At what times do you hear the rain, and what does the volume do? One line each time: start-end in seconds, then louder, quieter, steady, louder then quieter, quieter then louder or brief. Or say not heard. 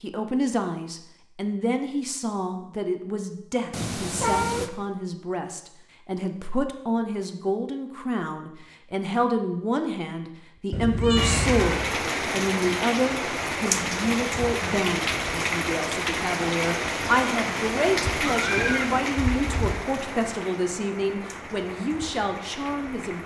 11.2-23.2 quieter.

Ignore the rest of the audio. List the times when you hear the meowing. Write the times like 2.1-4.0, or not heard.
3.7-4.7, 10.7-11.9, 18.2-19.8.